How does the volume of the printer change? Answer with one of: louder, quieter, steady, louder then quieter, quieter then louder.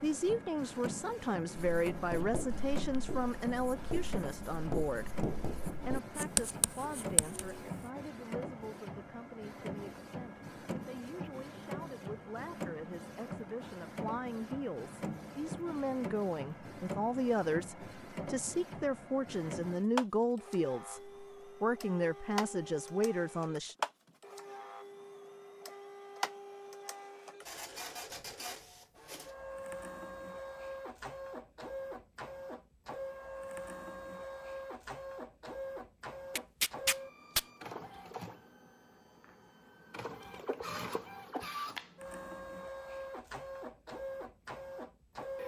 steady.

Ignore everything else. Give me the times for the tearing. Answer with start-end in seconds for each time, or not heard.
36.4-37.5.